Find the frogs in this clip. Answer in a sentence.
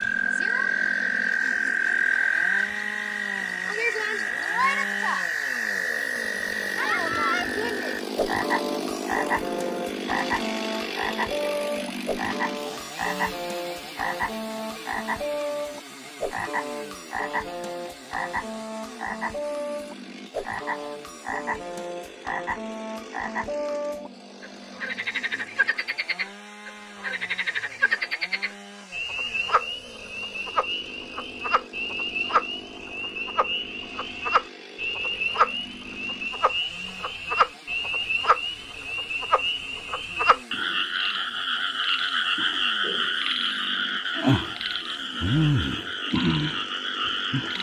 The frogs can be heard from 0.0 to 47.5 s.